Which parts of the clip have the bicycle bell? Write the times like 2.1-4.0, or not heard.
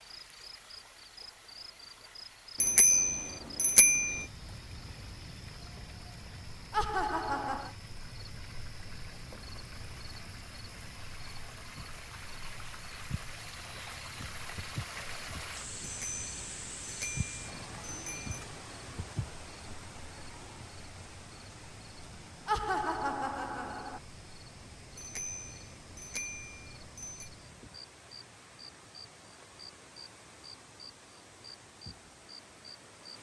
2.6-4.2, 15.8-18.4, 24.9-27.3.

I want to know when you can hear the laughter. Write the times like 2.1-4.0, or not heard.
6.7-7.8, 22.4-24.0.